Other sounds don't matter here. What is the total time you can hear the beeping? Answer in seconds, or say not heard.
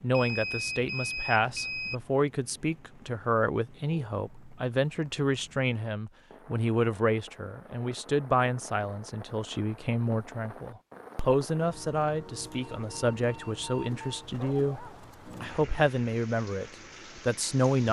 4 s.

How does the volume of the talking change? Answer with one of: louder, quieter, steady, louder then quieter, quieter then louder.
steady.